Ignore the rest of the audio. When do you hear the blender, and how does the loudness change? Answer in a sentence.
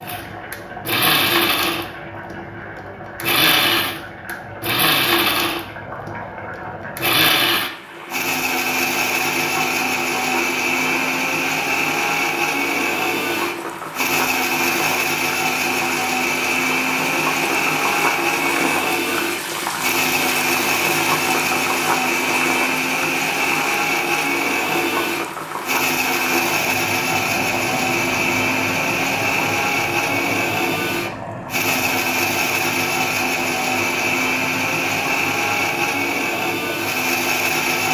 The blender can be heard from 0.0 to 37.8 s, at a steady volume.